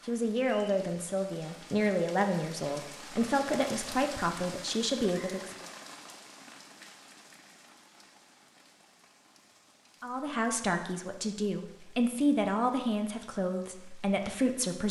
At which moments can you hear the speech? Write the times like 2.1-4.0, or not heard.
0.1-5.7, 10.0-14.8.